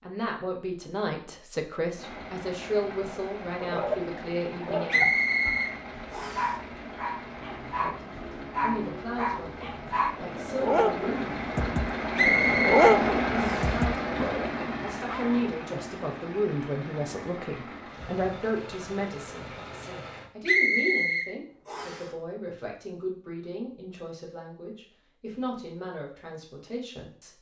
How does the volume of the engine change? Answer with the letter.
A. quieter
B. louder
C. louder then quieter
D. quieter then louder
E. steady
C.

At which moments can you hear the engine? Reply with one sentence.
You can hear the engine from 1.9 to 20.3 s.